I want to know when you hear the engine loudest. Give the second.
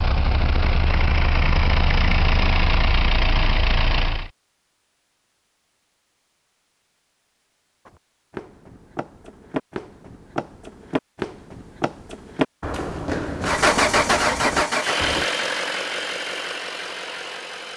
14 s.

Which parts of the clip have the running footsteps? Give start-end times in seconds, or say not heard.
7.8-15.2.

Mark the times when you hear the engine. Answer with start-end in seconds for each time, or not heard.
0.0-4.3, 13.4-17.7.